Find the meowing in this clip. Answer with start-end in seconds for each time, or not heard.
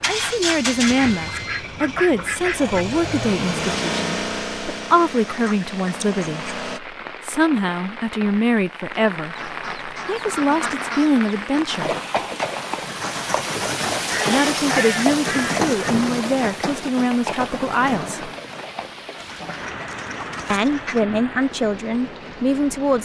not heard.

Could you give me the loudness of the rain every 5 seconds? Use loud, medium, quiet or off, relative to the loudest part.
quiet, medium, loud, loud, medium.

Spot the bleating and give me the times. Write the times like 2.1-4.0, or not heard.
not heard.